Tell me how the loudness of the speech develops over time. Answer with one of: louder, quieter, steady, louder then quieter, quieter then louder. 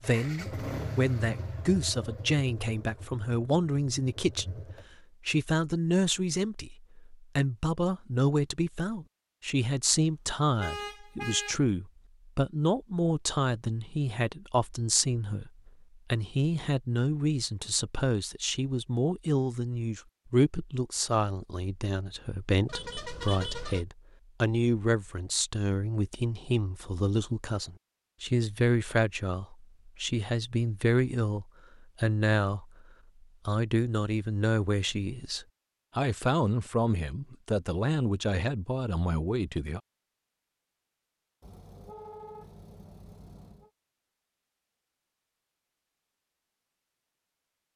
steady.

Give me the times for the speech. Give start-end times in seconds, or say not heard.
0.0-4.7, 5.2-32.6, 33.5-39.8.